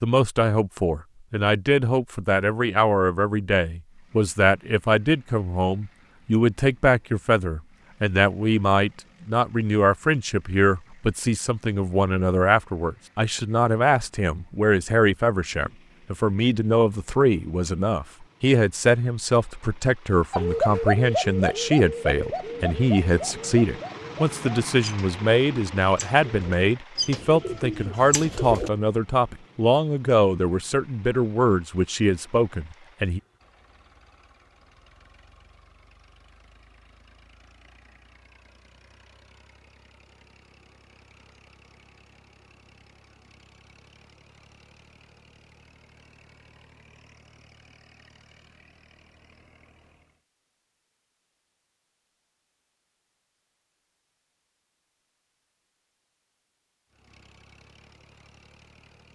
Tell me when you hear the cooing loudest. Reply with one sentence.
The volume of the cooing peaks at 21 seconds.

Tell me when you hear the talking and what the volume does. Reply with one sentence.
The talking can be heard from 0.0 to 33.2 s, at a steady volume.